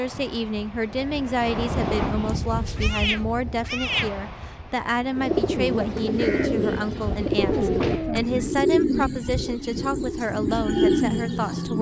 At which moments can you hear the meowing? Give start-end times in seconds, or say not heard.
2.1-4.2, 7.3-8.6.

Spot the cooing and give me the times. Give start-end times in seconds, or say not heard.
5.1-11.7.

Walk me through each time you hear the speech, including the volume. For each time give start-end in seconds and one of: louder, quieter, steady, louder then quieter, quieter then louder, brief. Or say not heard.
0.0-11.7 steady.